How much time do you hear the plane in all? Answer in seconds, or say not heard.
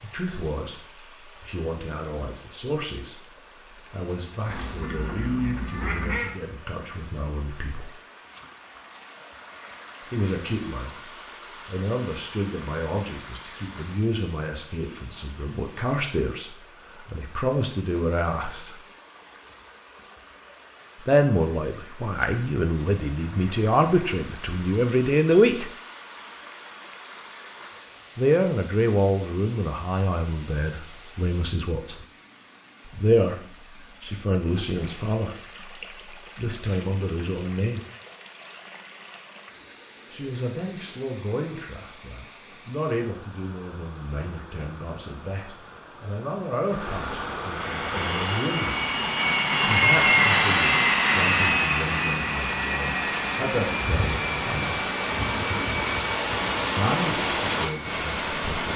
11 s.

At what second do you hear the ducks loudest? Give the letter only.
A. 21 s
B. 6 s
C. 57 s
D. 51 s
B.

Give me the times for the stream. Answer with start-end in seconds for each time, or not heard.
0.0-58.7.